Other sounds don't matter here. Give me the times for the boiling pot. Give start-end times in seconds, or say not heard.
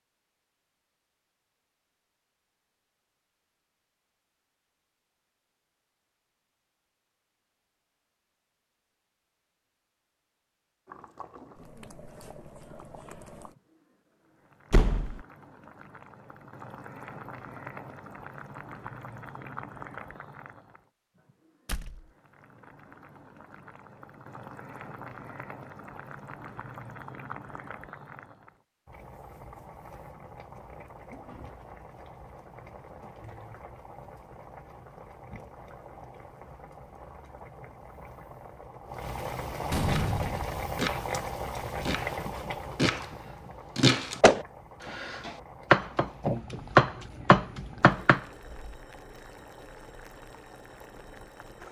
10.8-51.6.